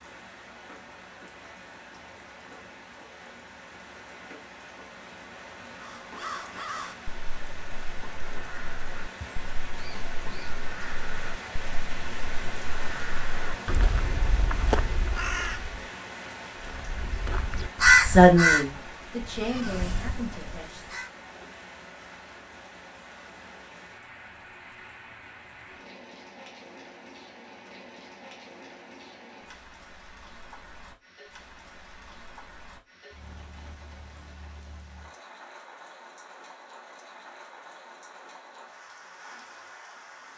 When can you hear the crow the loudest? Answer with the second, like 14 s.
18 s.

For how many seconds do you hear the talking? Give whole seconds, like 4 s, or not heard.
3 s.